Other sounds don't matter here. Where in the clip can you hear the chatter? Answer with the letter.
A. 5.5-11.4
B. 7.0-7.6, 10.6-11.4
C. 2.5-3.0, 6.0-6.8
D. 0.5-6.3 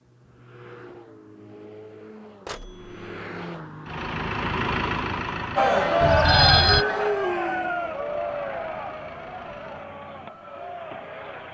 A.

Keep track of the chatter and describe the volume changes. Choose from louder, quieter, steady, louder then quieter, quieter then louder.
quieter.